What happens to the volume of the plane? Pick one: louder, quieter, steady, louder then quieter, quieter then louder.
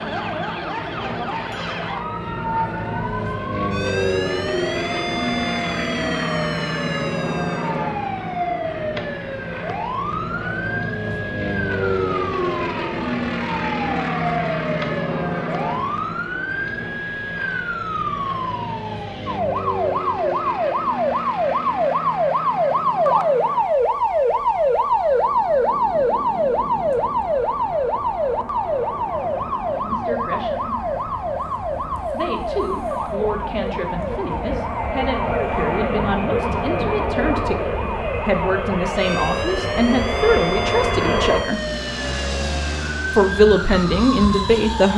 quieter then louder.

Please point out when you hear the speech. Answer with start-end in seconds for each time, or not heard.
29.8-30.8, 32.1-41.6, 43.1-44.9.